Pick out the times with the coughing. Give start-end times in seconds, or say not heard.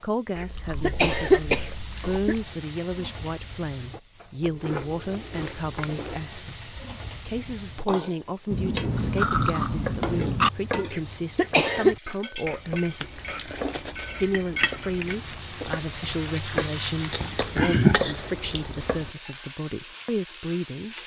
0.3-2.4, 10.9-11.9.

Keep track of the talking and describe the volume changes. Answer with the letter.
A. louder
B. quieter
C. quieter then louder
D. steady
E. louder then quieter
D.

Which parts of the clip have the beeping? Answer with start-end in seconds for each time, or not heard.
not heard.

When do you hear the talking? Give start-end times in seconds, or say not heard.
0.0-20.9.